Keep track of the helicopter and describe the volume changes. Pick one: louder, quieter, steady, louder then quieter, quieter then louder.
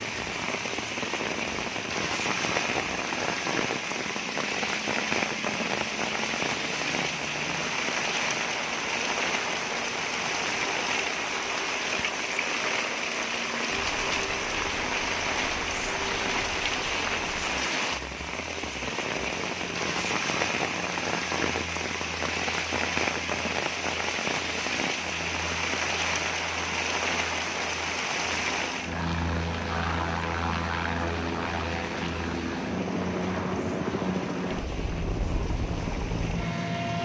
louder.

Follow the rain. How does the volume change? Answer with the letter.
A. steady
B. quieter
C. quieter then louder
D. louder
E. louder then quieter
B.